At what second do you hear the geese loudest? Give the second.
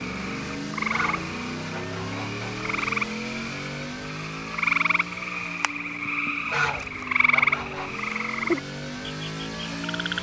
7 s.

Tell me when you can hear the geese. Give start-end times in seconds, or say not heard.
0.8-2.5, 6.5-7.9.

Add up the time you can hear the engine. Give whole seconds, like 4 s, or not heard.
10 s.